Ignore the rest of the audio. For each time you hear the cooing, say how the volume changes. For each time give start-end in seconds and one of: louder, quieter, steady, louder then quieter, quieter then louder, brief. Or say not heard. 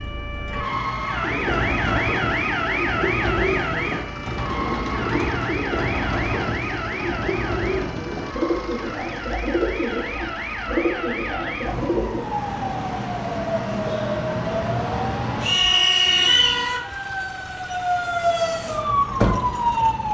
1.1-12.3 steady.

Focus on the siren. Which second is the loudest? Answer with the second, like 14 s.
19 s.